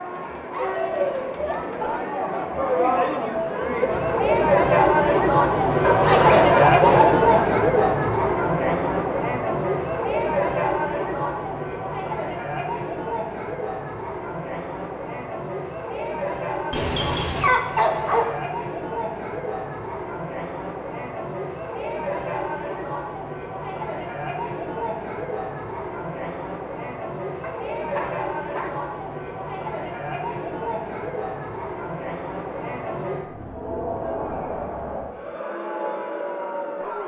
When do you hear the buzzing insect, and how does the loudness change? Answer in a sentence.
The buzzing insect can't be heard in this clip.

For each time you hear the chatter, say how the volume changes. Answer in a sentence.
The chatter can be heard from 0.0 to 37.0 s, getting quieter.